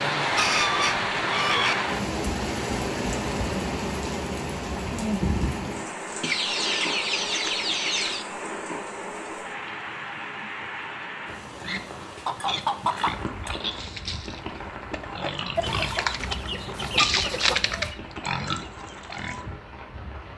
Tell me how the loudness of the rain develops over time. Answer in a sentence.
The volume of the rain goes down.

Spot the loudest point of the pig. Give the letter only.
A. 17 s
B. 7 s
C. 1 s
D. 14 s
A.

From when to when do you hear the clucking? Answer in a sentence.
The clucking can be heard from 0.3 to 1.8 s, from 6.2 to 8.2 s, from 12.2 to 13.6 s and from 15.6 to 17.9 s.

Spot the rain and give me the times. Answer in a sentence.
You can hear the rain from 0.0 to 20.3 s.